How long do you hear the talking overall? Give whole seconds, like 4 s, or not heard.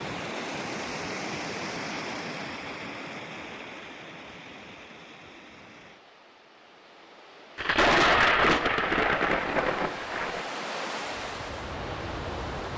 not heard.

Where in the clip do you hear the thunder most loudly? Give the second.
8 s.